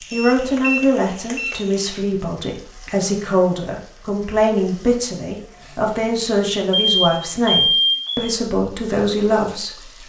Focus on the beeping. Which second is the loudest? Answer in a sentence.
The loudest moment of the beeping is at 8 seconds.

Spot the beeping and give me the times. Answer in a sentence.
You can hear the beeping from 0.1 to 1.6 s and from 6.9 to 8.3 s.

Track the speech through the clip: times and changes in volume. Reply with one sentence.
You can hear the speech from 0.1 to 10.0 s, at a steady volume.